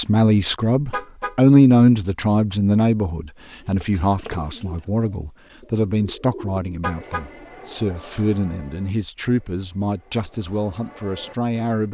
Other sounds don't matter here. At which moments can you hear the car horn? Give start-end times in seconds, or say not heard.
0.9-1.4, 6.8-7.2.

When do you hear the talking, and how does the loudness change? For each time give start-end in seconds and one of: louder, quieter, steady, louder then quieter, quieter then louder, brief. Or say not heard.
0.0-11.8 quieter.